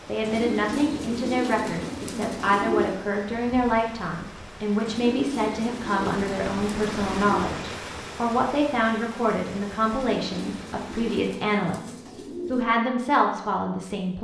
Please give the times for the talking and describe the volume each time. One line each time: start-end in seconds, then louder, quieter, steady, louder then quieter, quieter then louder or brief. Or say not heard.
0.1-14.1 steady.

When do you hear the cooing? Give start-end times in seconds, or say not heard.
0.2-3.0, 4.8-7.6, 9.9-12.7.